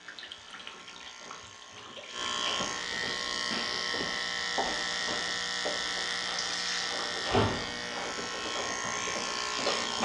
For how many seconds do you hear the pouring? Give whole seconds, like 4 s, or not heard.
3 s.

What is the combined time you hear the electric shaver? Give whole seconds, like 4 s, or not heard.
10 s.